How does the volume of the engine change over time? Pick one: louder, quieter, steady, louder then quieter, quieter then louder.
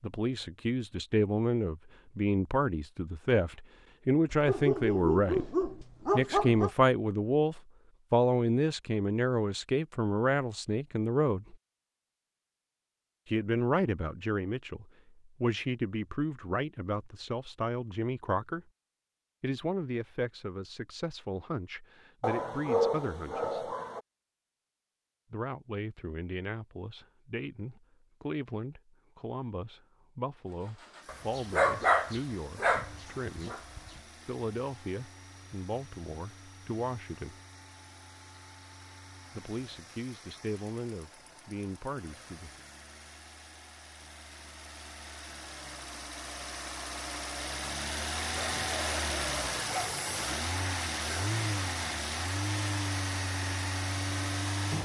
louder.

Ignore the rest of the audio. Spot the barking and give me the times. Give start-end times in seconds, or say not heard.
4.3-6.7, 22.2-24.0, 31.1-33.9, 48.4-50.0.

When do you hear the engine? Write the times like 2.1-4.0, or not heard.
30.4-54.7.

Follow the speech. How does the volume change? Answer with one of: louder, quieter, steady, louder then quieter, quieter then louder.
quieter.